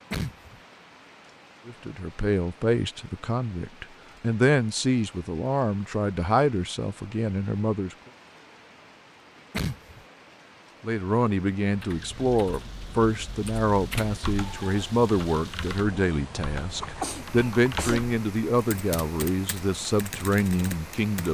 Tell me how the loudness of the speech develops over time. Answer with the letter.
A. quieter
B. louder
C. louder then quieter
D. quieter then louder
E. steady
E.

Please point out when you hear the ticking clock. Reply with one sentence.
The ticking clock can't be heard in this clip.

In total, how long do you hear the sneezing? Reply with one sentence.
The sneezing can be heard for 2 seconds in total.